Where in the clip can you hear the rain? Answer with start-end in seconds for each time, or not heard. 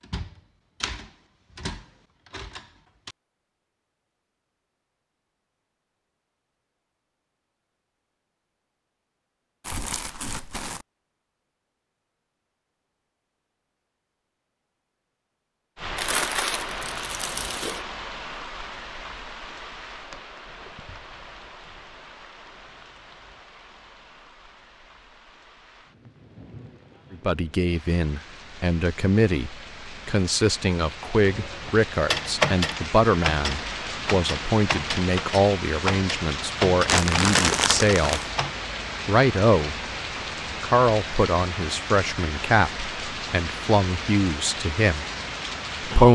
15.8-46.1.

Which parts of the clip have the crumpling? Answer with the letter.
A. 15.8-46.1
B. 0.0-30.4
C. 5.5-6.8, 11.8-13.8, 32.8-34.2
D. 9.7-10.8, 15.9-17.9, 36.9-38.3
D.